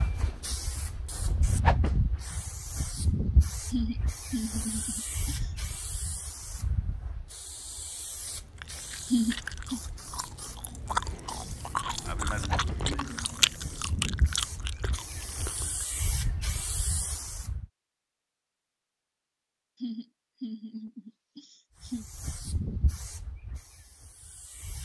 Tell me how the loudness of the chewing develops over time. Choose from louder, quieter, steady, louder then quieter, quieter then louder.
louder then quieter.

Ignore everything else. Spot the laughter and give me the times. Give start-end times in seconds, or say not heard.
3.7-5.5, 9.1-9.8, 19.8-22.1.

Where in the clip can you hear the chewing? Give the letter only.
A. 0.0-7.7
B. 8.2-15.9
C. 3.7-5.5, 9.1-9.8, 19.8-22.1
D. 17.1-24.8
B.